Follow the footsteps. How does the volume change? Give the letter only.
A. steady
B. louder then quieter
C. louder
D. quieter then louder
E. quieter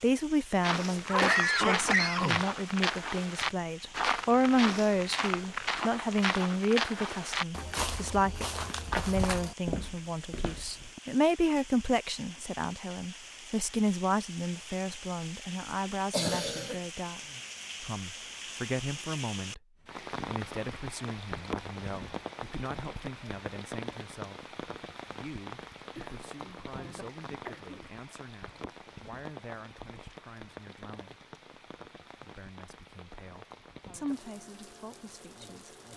A.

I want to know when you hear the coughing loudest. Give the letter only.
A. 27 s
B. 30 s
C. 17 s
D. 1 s
D.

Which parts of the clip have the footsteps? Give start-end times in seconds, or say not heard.
0.6-11.0.